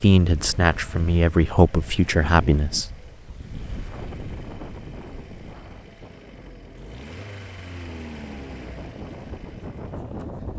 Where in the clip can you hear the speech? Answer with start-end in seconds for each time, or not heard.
0.0-3.0.